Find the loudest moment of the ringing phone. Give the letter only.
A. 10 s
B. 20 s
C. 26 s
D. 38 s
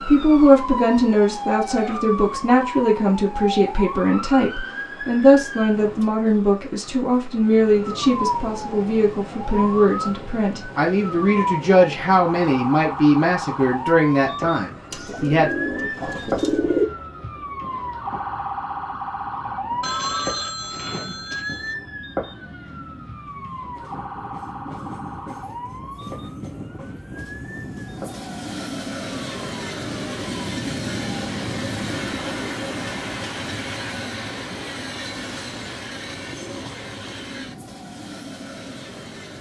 B.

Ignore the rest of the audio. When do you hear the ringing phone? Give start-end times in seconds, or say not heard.
19.8-21.8.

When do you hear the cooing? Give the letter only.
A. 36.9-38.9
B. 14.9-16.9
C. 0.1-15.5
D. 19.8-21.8
B.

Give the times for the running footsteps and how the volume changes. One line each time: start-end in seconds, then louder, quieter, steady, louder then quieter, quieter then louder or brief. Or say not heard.
not heard.